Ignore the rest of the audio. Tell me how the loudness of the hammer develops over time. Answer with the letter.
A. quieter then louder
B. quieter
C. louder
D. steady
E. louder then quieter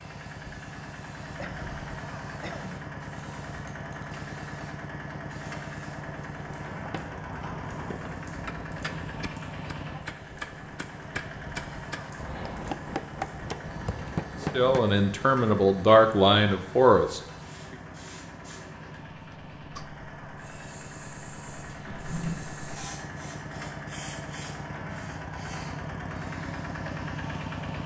C.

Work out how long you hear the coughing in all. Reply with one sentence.
You can hear the coughing for 3 seconds altogether.